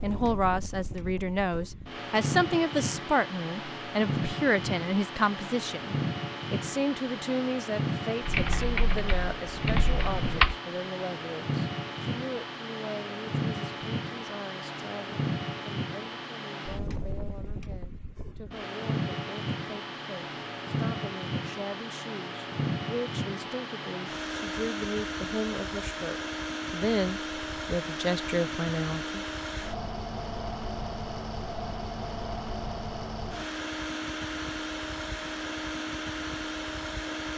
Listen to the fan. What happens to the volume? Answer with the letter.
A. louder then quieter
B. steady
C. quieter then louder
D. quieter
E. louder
B.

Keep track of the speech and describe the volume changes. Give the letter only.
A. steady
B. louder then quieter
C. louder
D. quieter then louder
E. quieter
D.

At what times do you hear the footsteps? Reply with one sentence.
The footsteps can't be heard in this clip.